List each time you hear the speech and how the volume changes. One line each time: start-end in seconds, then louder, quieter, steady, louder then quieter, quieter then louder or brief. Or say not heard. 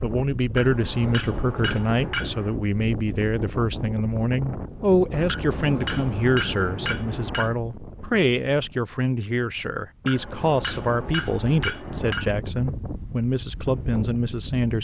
0.0-14.7 steady.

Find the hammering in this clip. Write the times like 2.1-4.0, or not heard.
0.5-2.5, 5.2-7.5, 10.0-12.3.